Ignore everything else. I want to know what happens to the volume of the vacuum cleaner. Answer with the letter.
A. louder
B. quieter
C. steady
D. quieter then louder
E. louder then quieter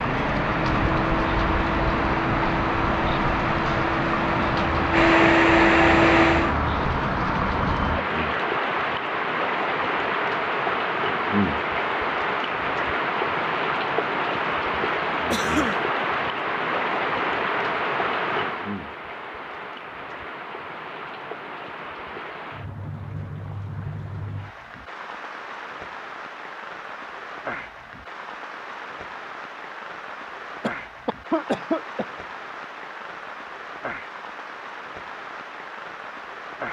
A.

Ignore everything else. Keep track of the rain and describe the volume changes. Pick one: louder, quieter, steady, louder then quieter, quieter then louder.
quieter.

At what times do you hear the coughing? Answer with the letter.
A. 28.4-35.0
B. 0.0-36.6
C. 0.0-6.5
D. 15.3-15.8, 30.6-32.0
D.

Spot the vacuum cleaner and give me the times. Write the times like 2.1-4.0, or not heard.
0.0-6.5.